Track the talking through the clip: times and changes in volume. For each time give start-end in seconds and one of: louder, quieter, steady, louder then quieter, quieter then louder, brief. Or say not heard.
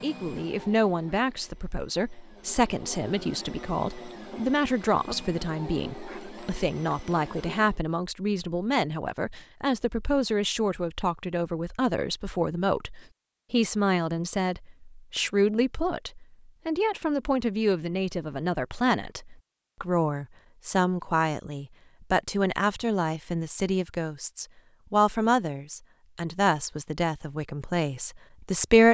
0.0-28.8 steady.